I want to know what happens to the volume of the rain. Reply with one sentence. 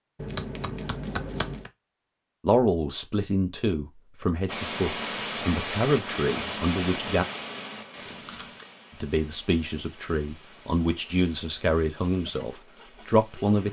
The loudness of the rain goes down.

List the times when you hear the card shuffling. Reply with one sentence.
You can hear the card shuffling from 0.1 to 1.7 s and from 8.0 to 8.7 s.